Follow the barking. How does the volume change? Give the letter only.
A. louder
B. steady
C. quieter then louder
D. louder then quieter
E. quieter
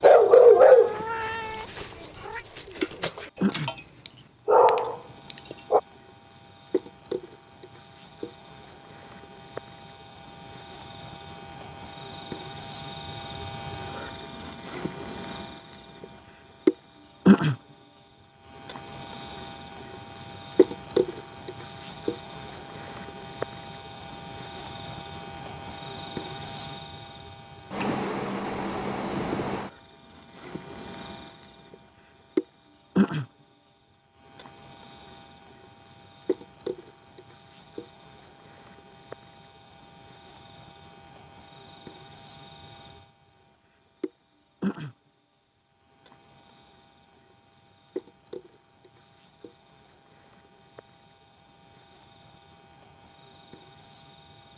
C.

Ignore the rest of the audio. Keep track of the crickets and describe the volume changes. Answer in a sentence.
The loudness of the crickets goes up, then down.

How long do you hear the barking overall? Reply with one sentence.
The barking can be heard for 6 seconds in total.